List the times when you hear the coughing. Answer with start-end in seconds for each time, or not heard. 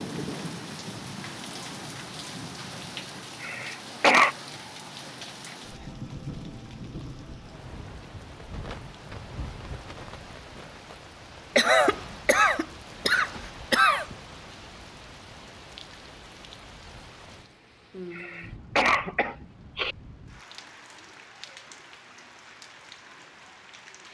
3.4-4.3, 11.6-14.2, 18.1-19.9.